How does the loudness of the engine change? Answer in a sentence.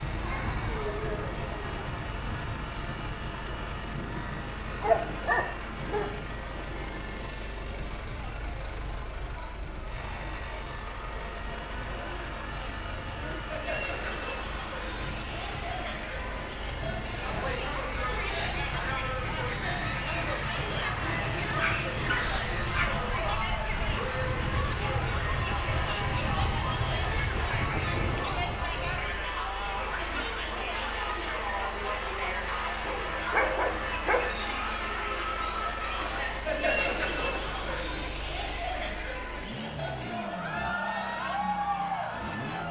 The volume of the engine stays about the same.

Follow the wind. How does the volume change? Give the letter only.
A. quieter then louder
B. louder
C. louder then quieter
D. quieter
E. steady
A.